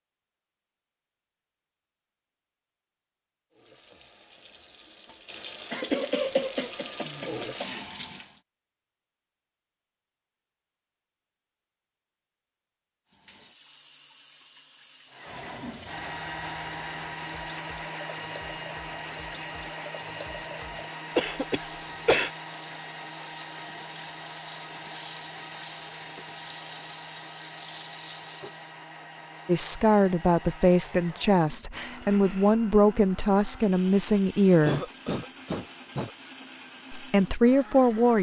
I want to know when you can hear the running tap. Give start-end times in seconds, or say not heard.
3.5-8.4, 13.1-28.8.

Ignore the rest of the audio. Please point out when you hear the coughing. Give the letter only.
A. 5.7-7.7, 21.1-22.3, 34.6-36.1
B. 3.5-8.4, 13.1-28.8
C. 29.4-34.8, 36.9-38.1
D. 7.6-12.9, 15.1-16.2
A.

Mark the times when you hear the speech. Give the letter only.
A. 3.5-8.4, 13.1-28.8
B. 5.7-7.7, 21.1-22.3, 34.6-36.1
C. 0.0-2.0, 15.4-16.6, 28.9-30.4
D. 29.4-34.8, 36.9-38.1
D.